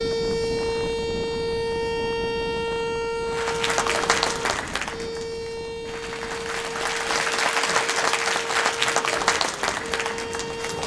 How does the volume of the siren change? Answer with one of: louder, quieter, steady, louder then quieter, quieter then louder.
quieter.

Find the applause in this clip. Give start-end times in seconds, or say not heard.
3.3-10.8.